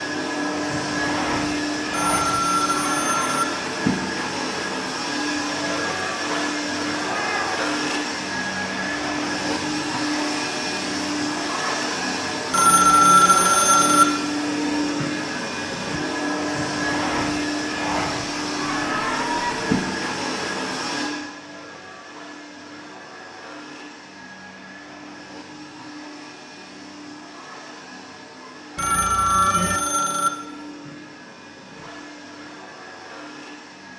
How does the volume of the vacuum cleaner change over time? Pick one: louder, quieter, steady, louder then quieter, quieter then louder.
quieter.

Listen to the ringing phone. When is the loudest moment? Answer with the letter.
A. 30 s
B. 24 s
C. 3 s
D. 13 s
D.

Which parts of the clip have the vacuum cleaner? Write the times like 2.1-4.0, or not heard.
0.0-33.9.